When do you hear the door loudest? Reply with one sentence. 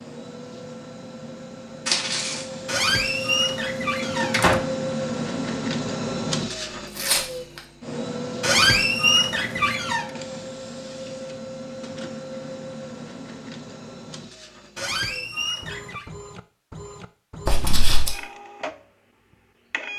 The volume of the door peaks at 9 seconds.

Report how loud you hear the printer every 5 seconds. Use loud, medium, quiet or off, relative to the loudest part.
loud, loud, medium, medium.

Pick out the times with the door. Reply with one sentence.
The door can be heard from 2.6 to 4.6 s, from 8.4 to 10.1 s and from 14.8 to 16.1 s.